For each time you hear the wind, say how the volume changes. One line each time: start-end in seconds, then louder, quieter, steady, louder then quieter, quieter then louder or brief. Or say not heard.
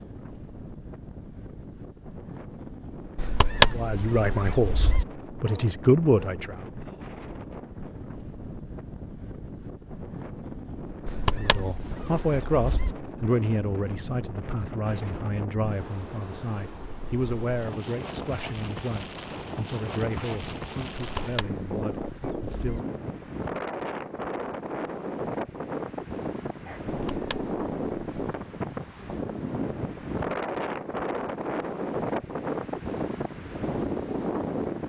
0.0-34.8 louder.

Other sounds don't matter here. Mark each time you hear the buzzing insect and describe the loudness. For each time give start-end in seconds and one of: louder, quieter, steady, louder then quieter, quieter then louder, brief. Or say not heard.
not heard.